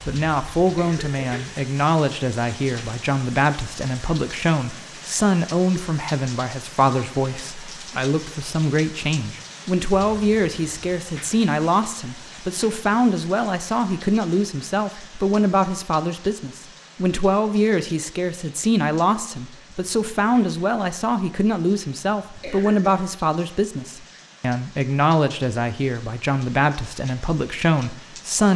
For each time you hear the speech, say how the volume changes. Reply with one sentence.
You can hear the speech from 0.1 to 28.5 s, at a steady volume.